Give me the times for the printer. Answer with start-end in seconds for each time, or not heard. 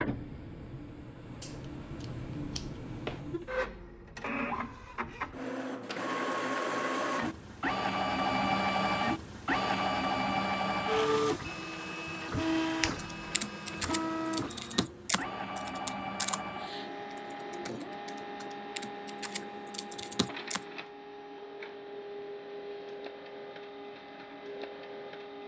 0.0-25.4.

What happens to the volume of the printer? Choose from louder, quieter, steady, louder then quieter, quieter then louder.
louder then quieter.